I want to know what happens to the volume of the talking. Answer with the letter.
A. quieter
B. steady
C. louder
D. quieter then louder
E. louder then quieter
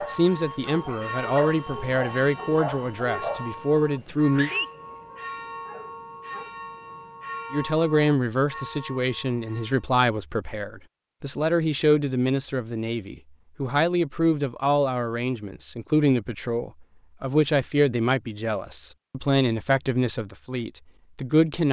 B.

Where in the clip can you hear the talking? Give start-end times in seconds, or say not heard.
0.1-4.5, 7.5-21.6.